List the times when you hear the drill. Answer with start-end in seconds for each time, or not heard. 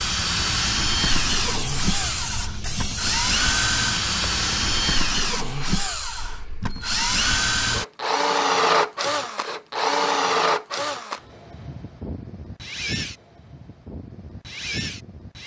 0.0-15.4.